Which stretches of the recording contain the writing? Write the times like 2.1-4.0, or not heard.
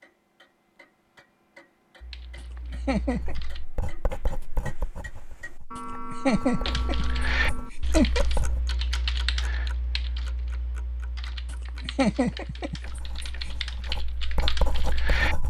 3.2-8.7, 12.8-15.4.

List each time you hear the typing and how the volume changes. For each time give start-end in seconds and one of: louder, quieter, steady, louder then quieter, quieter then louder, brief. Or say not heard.
2.0-3.6 brief
6.7-15.4 quieter then louder.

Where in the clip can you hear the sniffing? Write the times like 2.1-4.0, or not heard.
not heard.